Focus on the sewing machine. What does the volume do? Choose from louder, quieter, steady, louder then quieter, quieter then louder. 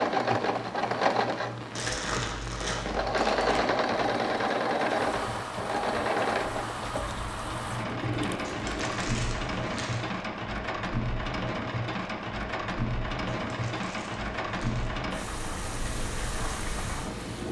quieter.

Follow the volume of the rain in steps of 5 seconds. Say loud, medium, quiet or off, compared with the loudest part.
medium, loud, loud, loud.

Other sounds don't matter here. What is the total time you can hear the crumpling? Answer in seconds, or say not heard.
5 s.